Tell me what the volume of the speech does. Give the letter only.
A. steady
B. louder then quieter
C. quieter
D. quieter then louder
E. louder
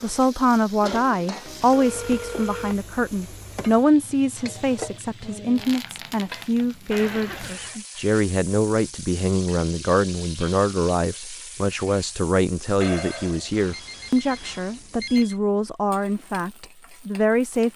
A.